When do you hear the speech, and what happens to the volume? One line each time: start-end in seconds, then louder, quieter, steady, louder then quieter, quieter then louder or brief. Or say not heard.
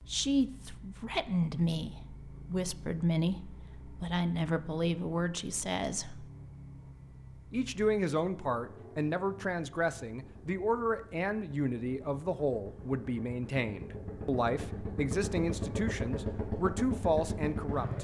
0.1-6.3 steady
7.5-17.9 steady.